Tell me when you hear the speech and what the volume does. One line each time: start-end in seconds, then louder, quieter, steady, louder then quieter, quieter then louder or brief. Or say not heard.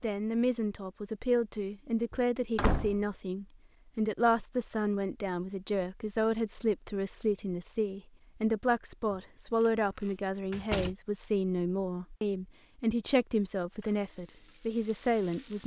0.0-15.6 steady.